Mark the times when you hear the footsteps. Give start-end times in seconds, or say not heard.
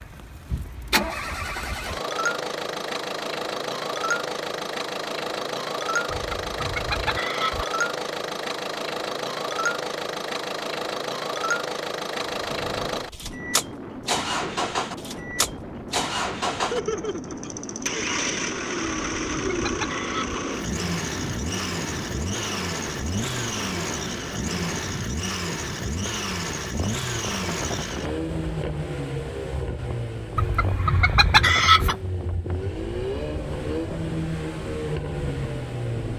not heard.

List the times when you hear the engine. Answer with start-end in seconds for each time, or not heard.
0.0-36.1.